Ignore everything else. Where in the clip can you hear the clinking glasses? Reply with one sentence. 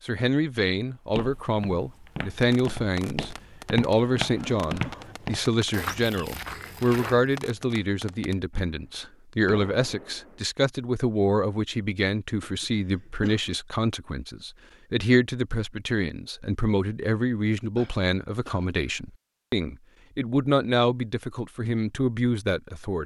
You can't hear the clinking glasses here.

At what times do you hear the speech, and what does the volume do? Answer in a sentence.
You can hear the speech from 0.0 to 23.0 s, at a steady volume.